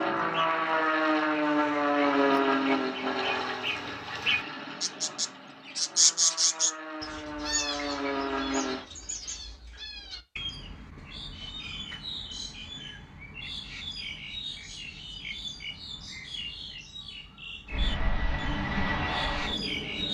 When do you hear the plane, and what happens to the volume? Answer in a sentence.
The plane can be heard from 0.0 to 8.8 s, getting quieter then louder; and briefly from 17.6 to 20.0 s.